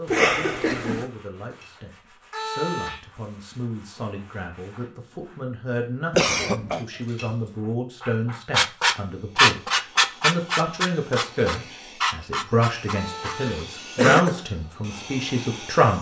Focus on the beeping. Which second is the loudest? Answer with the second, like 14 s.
3 s.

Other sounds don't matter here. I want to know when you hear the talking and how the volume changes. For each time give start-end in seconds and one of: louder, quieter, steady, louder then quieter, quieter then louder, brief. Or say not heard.
0.0-15.9 louder.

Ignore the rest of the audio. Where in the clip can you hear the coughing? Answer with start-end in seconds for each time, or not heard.
0.1-1.1, 6.1-6.8, 13.9-14.3.